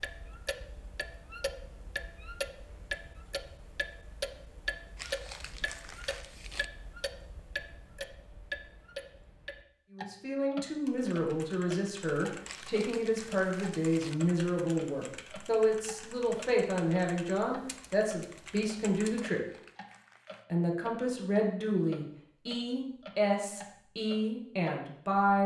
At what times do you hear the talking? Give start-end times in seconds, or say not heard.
9.9-19.4, 20.5-25.4.